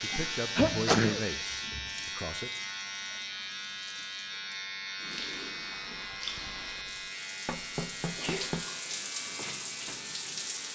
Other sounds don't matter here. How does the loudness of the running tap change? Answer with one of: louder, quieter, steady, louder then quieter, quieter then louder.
quieter then louder.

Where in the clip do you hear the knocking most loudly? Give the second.
8 s.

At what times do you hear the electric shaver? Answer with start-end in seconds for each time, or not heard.
0.0-10.6.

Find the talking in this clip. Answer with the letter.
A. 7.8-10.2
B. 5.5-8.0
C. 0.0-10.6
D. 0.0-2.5
D.